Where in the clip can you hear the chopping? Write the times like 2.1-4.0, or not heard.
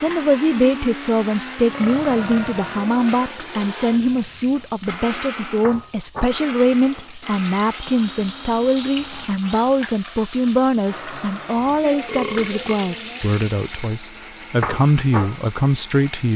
not heard.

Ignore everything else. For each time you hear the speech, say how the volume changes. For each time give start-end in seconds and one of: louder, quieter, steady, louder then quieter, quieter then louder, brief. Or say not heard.
0.0-16.3 steady.